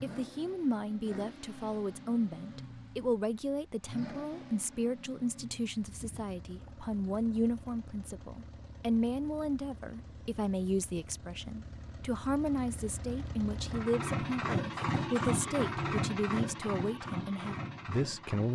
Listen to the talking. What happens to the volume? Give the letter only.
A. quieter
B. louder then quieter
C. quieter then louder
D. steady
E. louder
D.